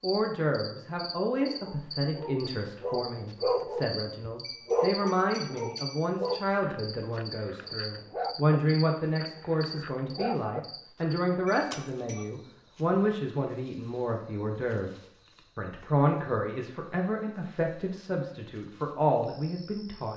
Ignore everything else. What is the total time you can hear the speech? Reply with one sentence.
You can hear the speech for 20 seconds altogether.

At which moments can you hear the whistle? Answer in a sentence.
You can't hear the whistle here.